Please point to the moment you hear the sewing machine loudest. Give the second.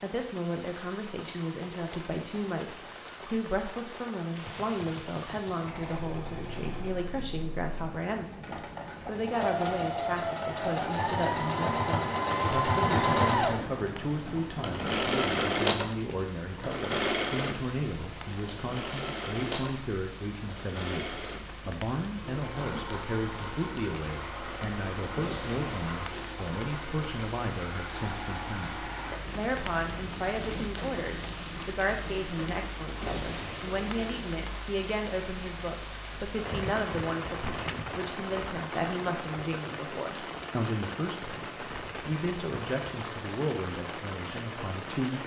13 s.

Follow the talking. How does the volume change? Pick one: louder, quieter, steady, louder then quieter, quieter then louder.
steady.